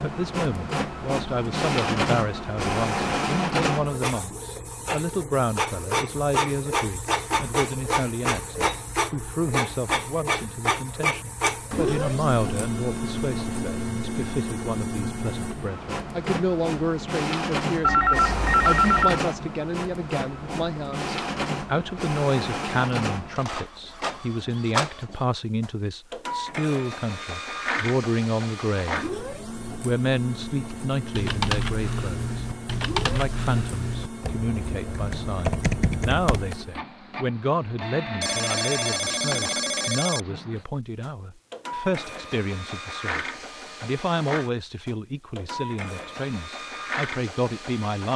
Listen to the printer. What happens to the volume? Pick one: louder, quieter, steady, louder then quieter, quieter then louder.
quieter.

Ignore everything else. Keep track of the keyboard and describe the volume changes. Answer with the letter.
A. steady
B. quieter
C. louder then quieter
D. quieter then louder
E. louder
D.